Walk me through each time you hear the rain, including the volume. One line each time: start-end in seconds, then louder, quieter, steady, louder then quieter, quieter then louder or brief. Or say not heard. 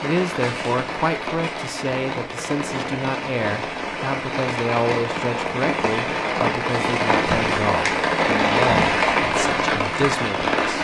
0.0-10.8 louder.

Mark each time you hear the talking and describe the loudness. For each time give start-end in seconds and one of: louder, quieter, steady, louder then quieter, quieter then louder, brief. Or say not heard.
0.0-10.8 steady.